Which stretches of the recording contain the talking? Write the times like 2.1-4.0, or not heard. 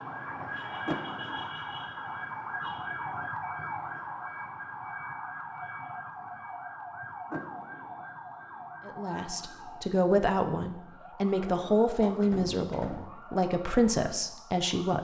8.8-14.9.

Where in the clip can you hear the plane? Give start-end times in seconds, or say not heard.
not heard.